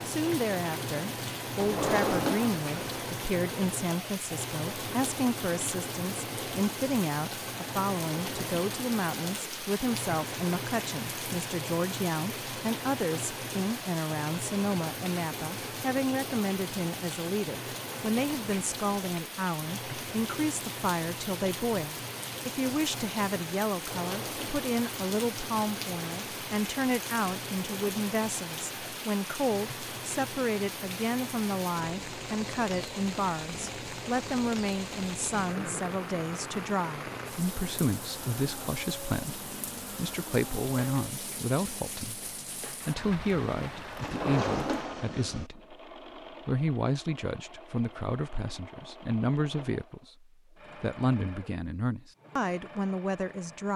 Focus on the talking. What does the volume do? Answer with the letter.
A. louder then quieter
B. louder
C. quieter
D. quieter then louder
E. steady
E.